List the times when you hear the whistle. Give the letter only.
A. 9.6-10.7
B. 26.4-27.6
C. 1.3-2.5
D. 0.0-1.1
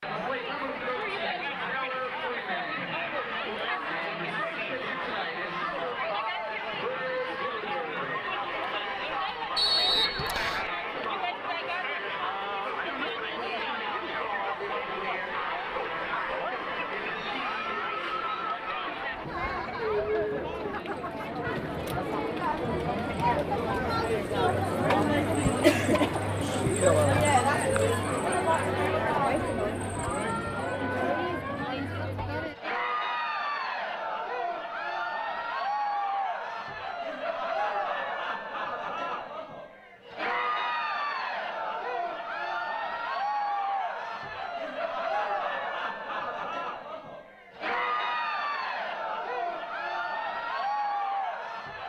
A.